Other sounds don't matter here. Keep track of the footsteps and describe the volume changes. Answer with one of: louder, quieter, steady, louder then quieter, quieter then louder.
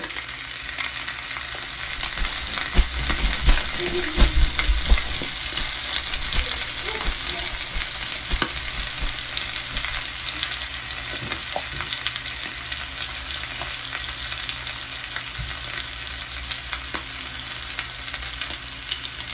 quieter.